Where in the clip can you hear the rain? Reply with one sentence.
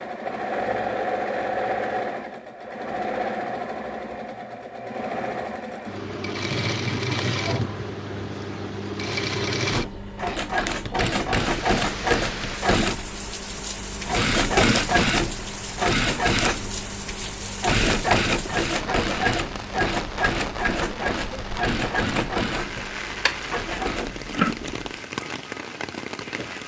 The rain can be heard from 11.3 to 26.6 s.